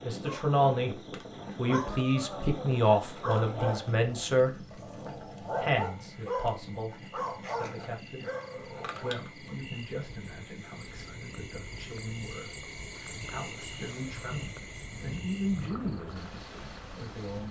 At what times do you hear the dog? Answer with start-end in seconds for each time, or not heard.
0.2-9.6.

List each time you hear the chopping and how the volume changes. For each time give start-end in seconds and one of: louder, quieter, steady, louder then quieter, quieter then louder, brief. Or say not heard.
not heard.